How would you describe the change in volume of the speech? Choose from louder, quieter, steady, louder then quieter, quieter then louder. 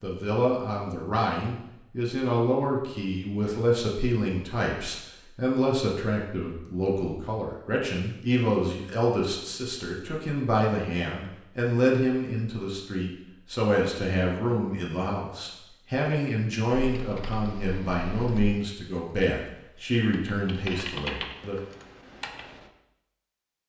steady.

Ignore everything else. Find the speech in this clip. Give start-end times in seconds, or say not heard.
0.0-21.6.